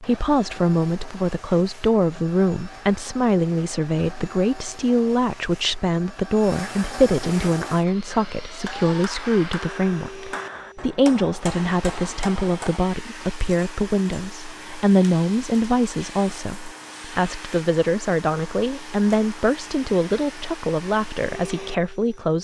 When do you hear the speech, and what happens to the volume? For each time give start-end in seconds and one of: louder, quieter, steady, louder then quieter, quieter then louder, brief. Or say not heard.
0.0-22.3 steady.